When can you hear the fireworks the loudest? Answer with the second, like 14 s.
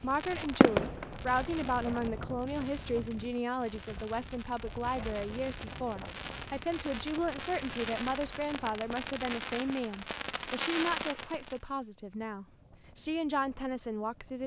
1 s.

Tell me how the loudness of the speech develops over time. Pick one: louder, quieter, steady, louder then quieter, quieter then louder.
steady.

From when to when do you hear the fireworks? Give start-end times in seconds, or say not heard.
0.0-11.6.